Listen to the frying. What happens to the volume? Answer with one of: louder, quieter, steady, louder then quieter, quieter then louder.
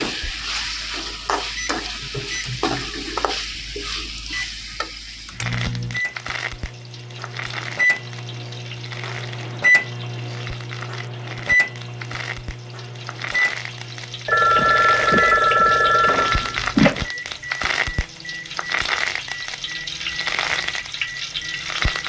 quieter then louder.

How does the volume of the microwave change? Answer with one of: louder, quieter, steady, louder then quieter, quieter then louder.
louder then quieter.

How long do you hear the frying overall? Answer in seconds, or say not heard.
22 s.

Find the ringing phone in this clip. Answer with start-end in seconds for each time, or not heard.
14.2-17.0.